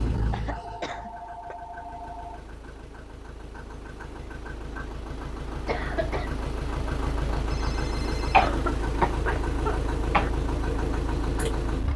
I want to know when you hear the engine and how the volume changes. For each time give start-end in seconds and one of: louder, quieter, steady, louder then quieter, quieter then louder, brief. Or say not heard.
0.0-11.9 louder.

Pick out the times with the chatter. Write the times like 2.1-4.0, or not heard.
not heard.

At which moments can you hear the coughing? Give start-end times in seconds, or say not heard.
0.3-1.6, 5.7-6.3, 8.3-10.3.